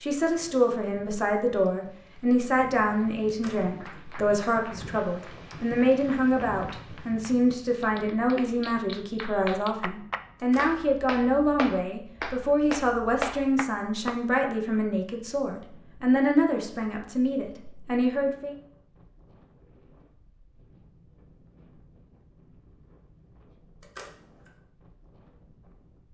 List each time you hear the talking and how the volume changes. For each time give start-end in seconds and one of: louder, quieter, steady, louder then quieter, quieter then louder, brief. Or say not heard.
0.0-18.6 steady.